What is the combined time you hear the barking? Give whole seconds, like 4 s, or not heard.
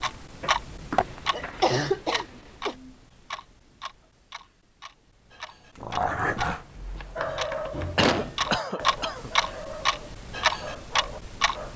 6 s.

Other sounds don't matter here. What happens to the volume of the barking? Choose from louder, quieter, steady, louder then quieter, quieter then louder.
quieter.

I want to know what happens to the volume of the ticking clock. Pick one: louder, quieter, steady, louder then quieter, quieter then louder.
quieter then louder.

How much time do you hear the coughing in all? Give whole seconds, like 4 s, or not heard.
3 s.